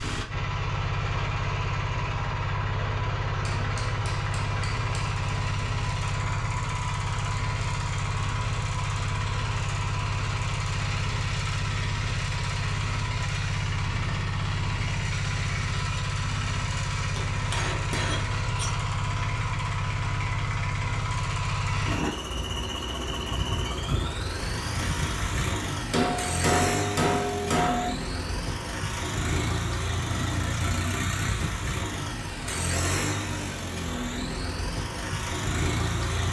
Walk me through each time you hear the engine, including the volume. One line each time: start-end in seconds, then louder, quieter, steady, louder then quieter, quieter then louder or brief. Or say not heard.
0.0-36.2 steady.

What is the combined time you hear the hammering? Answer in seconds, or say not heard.
5 s.